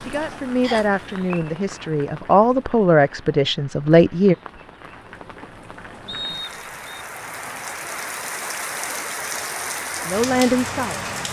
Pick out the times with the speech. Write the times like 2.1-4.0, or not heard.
0.1-4.3, 10.1-11.0.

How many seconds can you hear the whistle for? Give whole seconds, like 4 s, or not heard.
2 s.